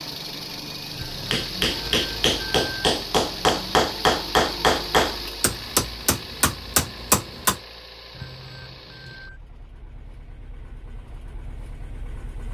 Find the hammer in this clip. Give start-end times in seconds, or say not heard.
1.2-7.6.